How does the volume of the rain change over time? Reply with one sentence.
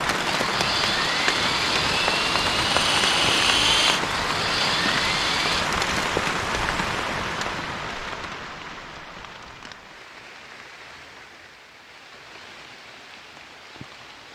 The volume of the rain goes down.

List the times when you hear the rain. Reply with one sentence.
You can hear the rain from 0.0 to 14.3 s.